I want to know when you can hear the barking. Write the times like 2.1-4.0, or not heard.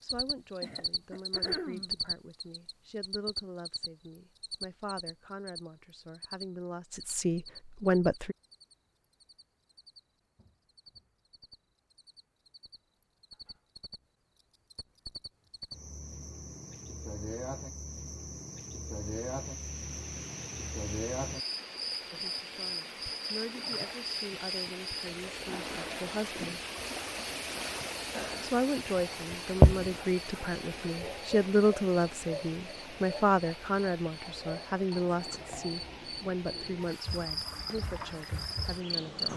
not heard.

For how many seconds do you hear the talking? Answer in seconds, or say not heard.
24 s.